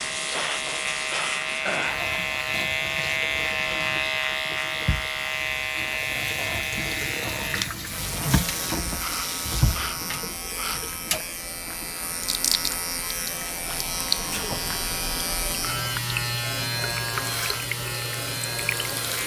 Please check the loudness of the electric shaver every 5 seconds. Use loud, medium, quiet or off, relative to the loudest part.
loud, loud, medium, loud.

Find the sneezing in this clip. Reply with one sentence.
You can hear the sneezing from 0.3 to 2.1 s, from 9.0 to 10.8 s and from 14.3 to 14.8 s.